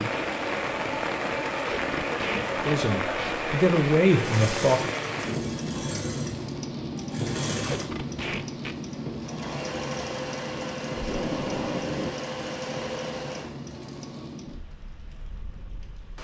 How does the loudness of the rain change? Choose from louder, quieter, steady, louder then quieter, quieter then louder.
quieter.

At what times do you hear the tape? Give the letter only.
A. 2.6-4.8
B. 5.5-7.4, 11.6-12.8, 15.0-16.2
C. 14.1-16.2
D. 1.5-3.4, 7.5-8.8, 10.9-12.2
D.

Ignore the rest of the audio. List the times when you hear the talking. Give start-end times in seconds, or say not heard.
2.6-4.8.